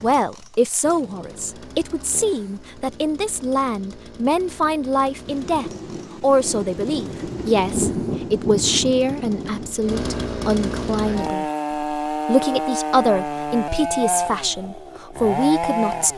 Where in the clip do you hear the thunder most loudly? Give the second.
8 s.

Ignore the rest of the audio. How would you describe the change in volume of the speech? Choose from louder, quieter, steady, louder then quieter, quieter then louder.
steady.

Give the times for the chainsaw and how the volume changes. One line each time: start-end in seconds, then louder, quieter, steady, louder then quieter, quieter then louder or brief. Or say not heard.
0.0-16.1 louder.